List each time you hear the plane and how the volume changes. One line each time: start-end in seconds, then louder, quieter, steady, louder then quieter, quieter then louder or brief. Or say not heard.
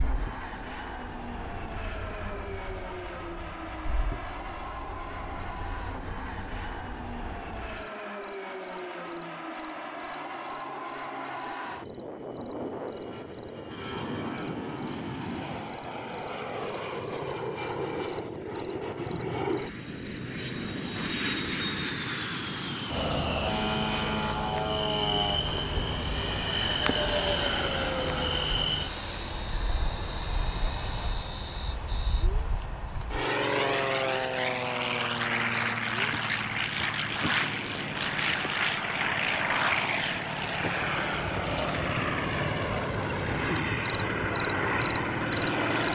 0.0-45.9 louder.